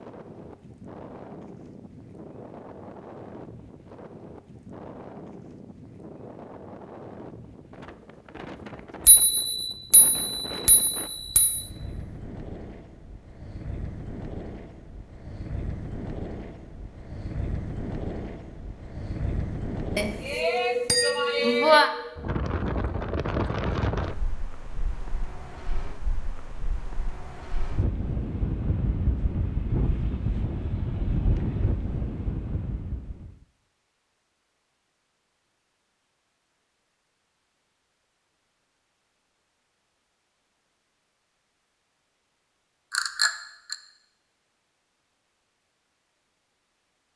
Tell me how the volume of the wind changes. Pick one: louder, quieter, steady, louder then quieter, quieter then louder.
louder.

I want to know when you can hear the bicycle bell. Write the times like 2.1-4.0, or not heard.
9.1-11.7, 19.9-21.9, 42.9-43.8.